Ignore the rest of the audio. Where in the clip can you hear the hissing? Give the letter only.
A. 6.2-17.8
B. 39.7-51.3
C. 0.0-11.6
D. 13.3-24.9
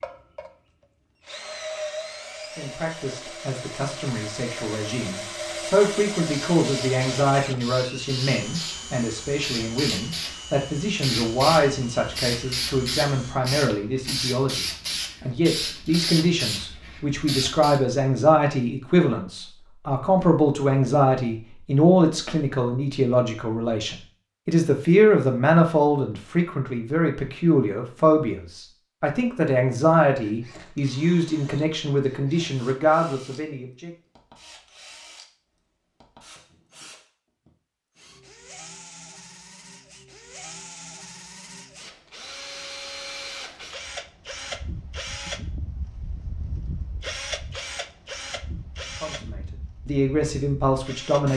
A.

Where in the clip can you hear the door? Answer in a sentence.
You can't hear the door here.